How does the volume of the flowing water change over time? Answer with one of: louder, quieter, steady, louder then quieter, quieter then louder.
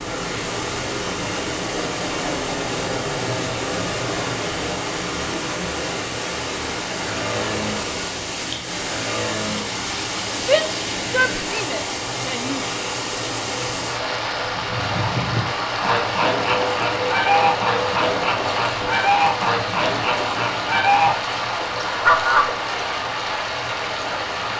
steady.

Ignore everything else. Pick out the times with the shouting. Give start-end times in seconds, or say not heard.
10.4-12.7.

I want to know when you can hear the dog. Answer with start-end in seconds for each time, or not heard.
not heard.